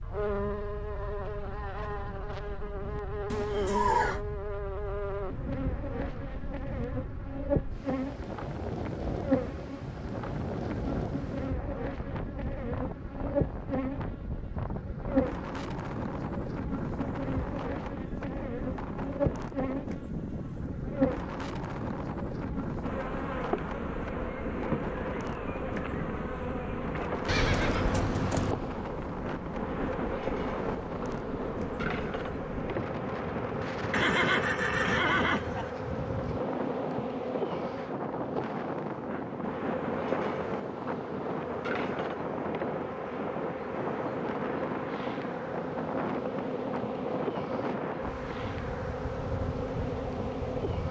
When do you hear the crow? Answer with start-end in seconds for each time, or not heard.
not heard.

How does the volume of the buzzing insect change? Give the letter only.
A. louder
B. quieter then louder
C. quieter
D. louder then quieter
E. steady
E.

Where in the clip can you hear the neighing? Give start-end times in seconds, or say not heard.
3.3-4.2, 27.2-28.6, 33.9-35.7.